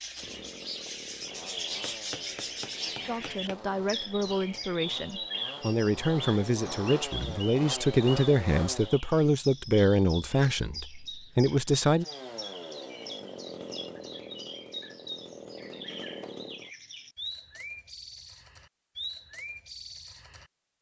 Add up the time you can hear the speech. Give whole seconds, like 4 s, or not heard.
9 s.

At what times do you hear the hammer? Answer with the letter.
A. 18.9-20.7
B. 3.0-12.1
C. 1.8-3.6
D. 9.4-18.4
C.